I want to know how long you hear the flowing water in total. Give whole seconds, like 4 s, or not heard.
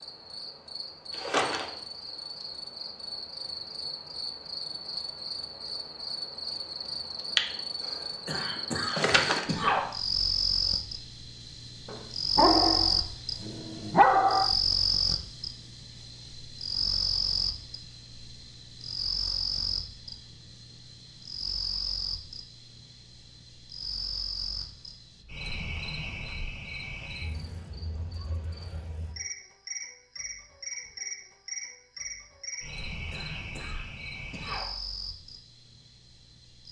not heard.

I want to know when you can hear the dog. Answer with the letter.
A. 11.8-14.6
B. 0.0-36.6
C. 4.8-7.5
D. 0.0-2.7
A.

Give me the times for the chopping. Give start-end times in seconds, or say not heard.
not heard.